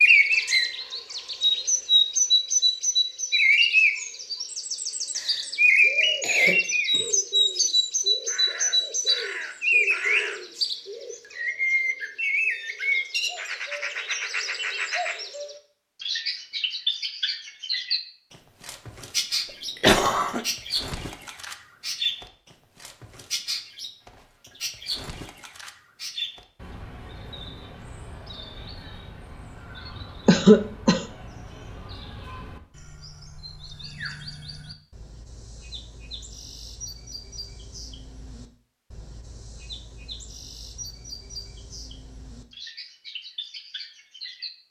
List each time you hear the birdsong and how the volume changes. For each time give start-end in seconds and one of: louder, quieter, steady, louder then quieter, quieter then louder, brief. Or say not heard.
0.0-44.5 quieter.